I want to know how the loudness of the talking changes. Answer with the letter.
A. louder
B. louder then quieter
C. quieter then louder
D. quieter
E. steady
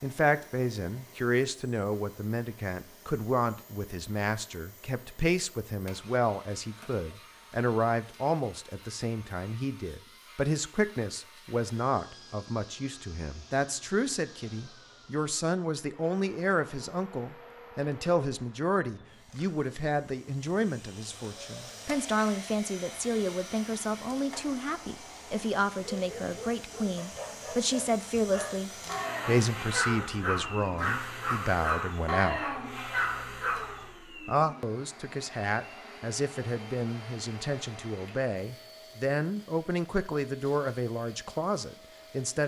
E.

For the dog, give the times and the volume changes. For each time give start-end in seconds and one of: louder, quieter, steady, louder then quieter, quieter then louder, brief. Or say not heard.
25.9-33.9 louder.